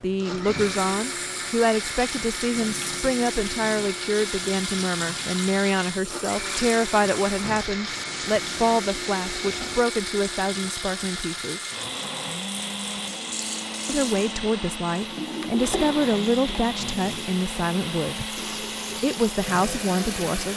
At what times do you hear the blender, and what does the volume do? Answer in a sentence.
The blender can be heard from 0.0 to 20.5 s, at a steady volume.